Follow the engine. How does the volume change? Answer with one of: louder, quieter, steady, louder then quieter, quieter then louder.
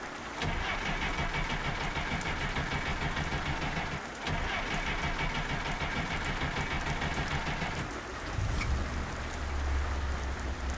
quieter.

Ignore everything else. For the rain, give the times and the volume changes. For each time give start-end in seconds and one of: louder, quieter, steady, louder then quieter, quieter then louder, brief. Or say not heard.
0.0-10.7 steady.